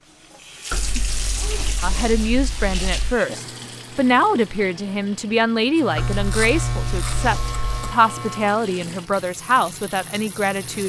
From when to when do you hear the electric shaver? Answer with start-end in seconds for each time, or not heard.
5.8-8.6.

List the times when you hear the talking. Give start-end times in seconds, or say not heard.
1.8-10.8.